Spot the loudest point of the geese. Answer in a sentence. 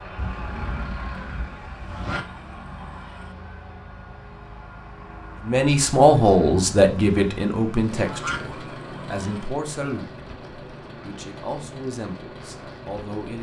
The loudest moment of the geese is at 8 seconds.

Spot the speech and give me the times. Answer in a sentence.
The speech can be heard from 5.4 to 10.1 s and from 11.0 to 13.3 s.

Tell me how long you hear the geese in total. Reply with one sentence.
The geese can be heard for 3 seconds in total.